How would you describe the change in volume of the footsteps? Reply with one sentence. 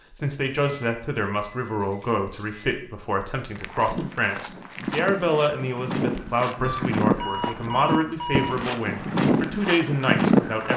The loudness of the footsteps goes up.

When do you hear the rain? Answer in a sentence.
The rain can't be heard in this clip.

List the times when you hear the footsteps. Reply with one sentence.
The footsteps can be heard from 3.5 to 10.7 s.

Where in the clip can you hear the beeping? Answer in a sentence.
You can hear the beeping from 0.5 to 2.9 s and from 6.6 to 8.6 s.